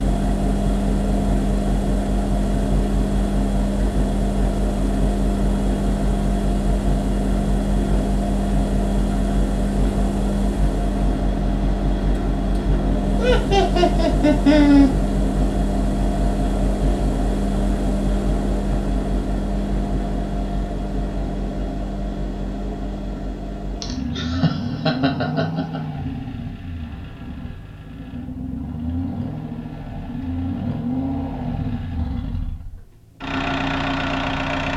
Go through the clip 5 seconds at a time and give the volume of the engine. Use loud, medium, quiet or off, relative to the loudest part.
loud, loud, loud, loud, medium, medium, loud.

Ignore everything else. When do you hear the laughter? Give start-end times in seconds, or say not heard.
13.2-14.9, 23.8-25.8.